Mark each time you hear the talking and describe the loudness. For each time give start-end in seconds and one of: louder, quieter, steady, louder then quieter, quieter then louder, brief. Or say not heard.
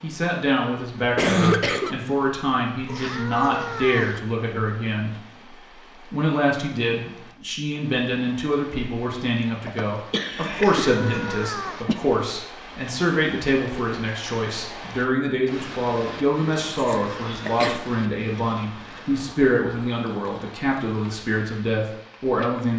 0.0-22.7 steady.